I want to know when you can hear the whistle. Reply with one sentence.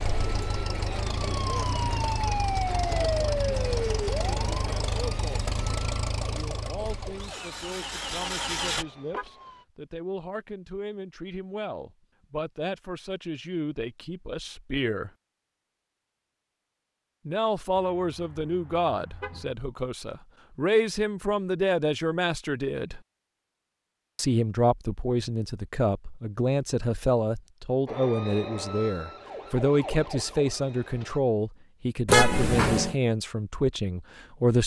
The whistle can't be heard in this clip.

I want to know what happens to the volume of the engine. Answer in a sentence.
The volume of the engine stays about the same.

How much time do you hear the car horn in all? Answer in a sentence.
You can hear the car horn for 3 seconds altogether.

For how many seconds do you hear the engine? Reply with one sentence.
You can hear the engine for 9 seconds altogether.